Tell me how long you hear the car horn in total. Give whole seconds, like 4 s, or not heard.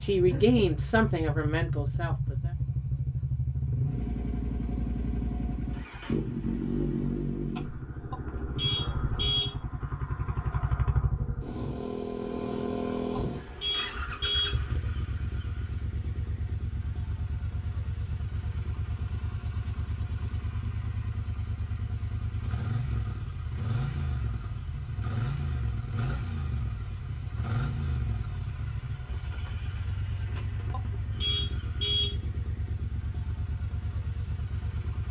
4 s.